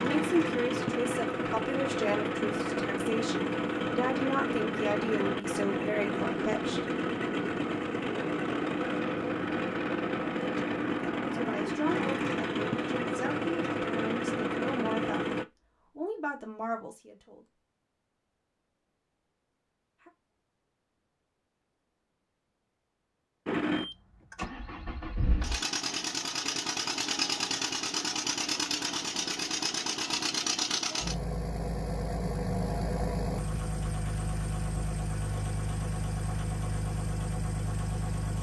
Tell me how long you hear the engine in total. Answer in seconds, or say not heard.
30 s.